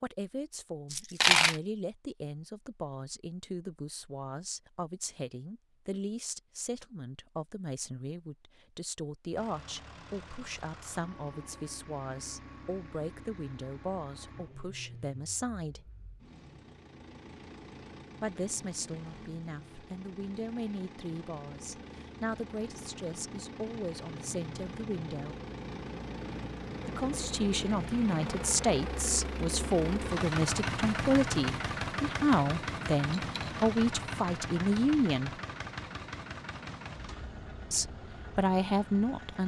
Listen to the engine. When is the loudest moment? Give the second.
31 s.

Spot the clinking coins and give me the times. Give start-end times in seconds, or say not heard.
0.9-1.6, 33.0-33.5.